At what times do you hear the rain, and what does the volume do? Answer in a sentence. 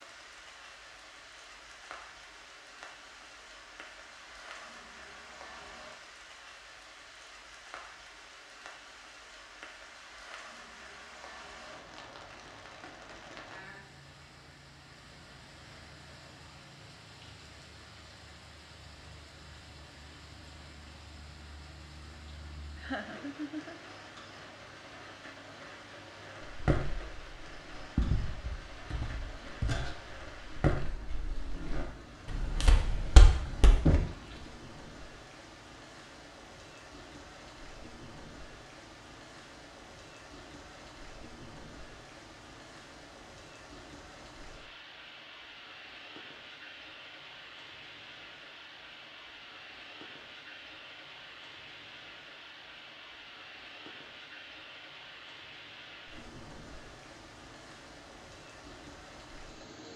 You can hear the rain from 0.0 to 59.9 s, at a steady volume.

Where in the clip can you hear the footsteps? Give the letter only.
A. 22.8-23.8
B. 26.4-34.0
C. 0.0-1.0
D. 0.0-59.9
B.